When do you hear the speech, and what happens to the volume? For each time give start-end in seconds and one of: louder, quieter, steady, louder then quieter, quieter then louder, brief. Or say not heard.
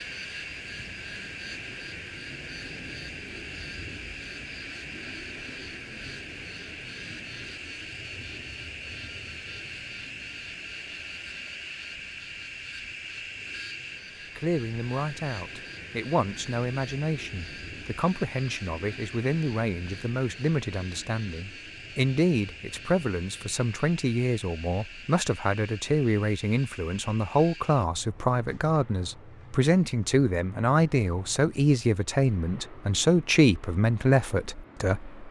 14.3-35.1 louder.